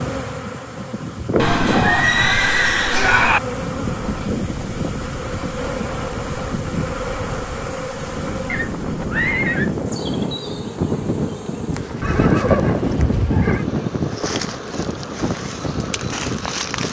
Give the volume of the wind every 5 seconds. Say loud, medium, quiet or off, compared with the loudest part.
medium, medium, loud, medium.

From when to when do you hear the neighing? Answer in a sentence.
You can hear the neighing from 1.4 to 3.4 s, from 8.4 to 9.7 s and from 12.0 to 13.7 s.